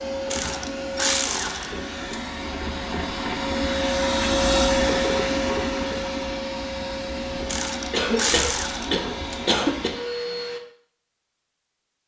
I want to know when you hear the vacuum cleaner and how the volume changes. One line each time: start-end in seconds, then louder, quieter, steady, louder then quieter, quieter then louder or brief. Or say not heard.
0.0-10.6 louder then quieter.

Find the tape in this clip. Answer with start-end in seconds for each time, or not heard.
not heard.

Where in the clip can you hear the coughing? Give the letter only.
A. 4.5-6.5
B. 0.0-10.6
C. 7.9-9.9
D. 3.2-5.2
C.